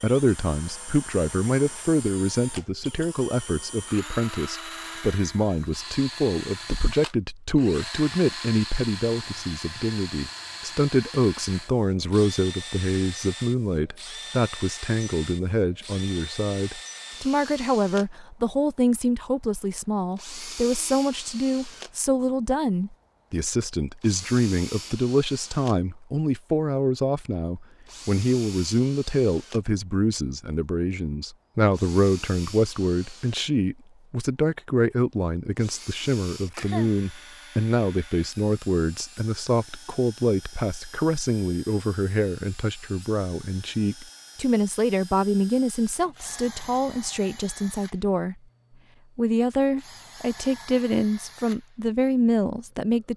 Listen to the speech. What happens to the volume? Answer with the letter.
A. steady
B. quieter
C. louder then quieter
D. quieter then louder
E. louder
A.